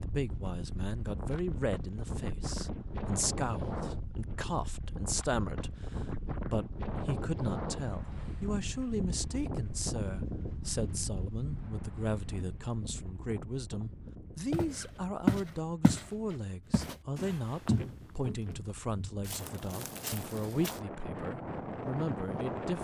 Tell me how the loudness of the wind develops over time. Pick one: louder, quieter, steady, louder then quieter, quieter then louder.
quieter then louder.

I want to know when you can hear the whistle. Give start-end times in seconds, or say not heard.
not heard.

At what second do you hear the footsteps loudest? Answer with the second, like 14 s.
15 s.